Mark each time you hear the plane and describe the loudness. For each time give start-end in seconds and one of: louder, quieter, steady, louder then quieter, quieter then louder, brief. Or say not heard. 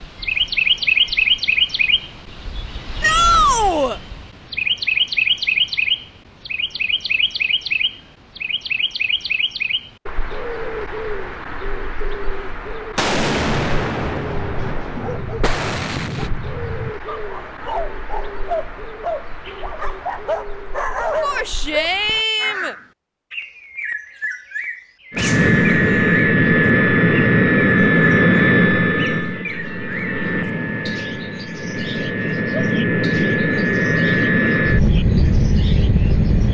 25.1-36.4 quieter then louder.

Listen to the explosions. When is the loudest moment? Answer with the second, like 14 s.
13 s.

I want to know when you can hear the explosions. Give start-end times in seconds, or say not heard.
12.9-16.3, 25.1-26.2.